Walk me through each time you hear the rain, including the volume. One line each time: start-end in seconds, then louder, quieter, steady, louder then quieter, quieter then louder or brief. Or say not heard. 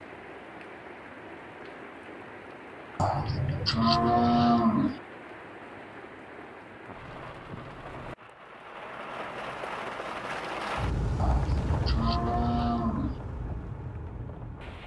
0.0-14.8 louder.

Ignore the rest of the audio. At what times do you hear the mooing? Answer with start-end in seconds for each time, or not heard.
3.0-5.0, 11.2-13.2.